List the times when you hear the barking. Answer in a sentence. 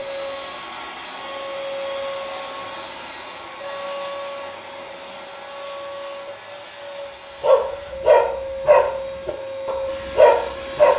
The barking can be heard from 7.4 to 10.9 s.